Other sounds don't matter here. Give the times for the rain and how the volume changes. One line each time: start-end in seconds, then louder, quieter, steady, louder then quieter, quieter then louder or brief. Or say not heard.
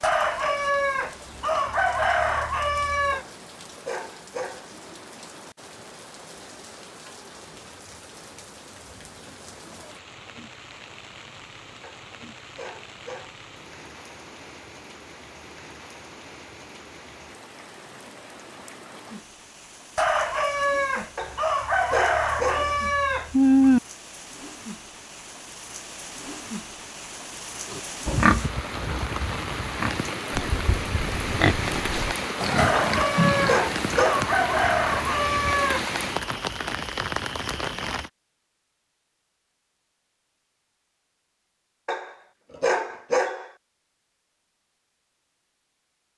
0.0-38.1 louder.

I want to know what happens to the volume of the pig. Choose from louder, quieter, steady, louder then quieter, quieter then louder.
quieter then louder.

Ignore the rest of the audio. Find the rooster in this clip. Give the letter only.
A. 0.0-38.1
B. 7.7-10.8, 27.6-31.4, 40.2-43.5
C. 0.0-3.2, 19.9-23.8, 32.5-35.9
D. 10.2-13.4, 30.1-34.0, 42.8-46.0
C.